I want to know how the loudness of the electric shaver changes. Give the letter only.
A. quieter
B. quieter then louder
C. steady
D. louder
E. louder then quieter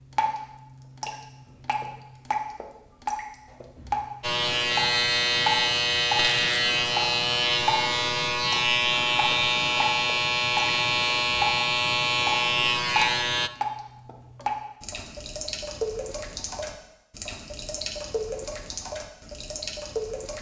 C.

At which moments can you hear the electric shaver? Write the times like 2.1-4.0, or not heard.
4.2-13.5.